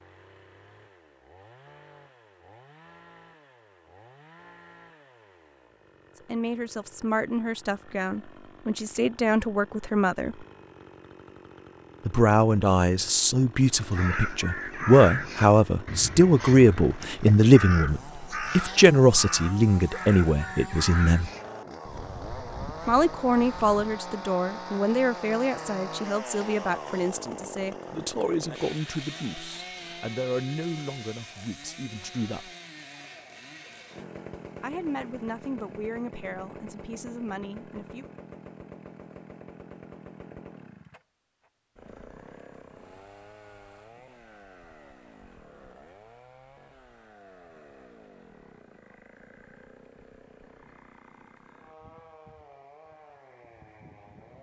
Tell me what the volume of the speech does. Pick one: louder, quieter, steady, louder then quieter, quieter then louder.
louder then quieter.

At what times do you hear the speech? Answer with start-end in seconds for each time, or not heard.
6.2-10.4, 12.1-21.3, 22.9-32.5, 34.6-38.0.